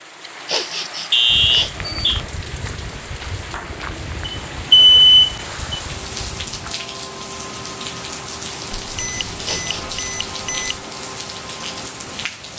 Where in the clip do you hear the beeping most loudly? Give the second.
5 s.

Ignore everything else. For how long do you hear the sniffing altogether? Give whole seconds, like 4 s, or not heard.
2 s.